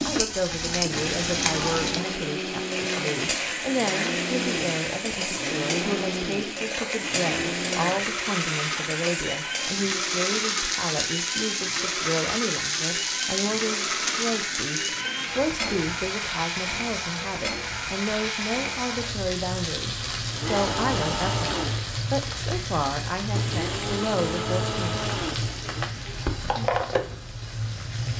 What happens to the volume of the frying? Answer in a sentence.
The loudness of the frying stays about the same.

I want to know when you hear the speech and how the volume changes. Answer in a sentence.
The speech can be heard from 0.1 to 24.9 s, at a steady volume.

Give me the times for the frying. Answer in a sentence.
The frying can be heard from 0.0 to 28.1 s.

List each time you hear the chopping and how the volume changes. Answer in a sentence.
The chopping can't be heard in this clip.